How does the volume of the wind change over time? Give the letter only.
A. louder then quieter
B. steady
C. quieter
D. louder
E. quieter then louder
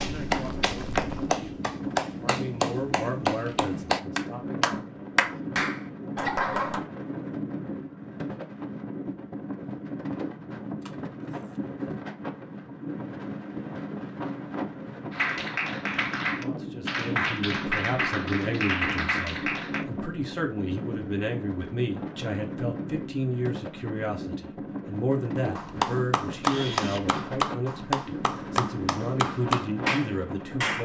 B.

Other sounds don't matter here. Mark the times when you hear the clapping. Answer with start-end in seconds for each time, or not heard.
0.0-6.8, 15.1-19.9, 25.6-30.8.